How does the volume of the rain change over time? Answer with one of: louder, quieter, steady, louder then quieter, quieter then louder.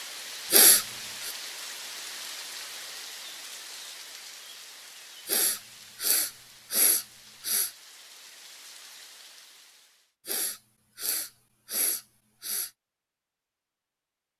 quieter.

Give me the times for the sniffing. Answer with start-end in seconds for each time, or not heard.
0.5-1.4, 5.2-7.7, 10.2-12.7.